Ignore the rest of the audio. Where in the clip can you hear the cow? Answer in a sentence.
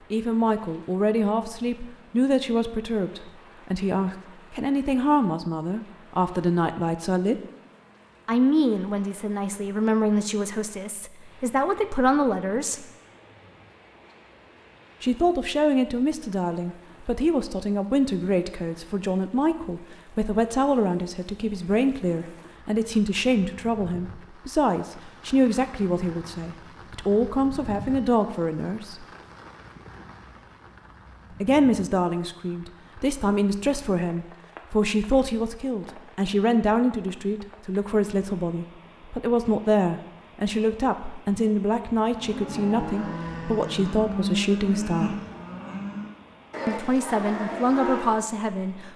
The cow can be heard from 42.0 to 48.2 s.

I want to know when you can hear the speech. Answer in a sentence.
You can hear the speech from 0.1 to 7.4 s, from 8.2 to 12.8 s, from 15.0 to 29.1 s, from 31.4 to 45.1 s and from 46.6 to 48.9 s.